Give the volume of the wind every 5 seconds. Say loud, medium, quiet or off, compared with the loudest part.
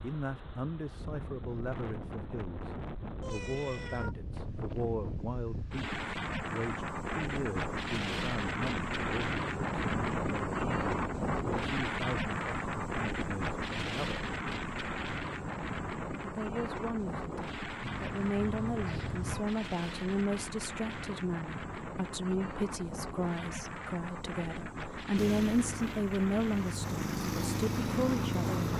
medium, loud, loud, medium, medium, medium.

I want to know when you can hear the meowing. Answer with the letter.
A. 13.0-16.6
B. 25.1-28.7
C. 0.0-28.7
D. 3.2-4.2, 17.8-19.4
D.